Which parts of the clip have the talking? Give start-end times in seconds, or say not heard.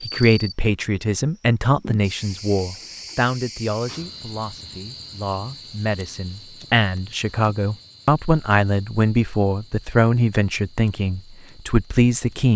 0.0-12.5.